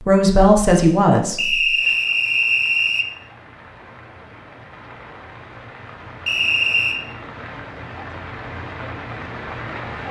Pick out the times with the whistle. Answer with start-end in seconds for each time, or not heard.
1.4-3.0, 6.2-7.0.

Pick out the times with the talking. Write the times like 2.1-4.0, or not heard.
0.1-1.7.